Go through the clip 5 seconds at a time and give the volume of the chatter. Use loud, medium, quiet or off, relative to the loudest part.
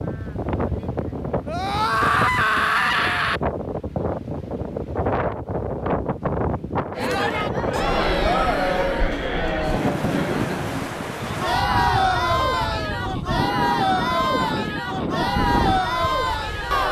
off, loud, loud, loud.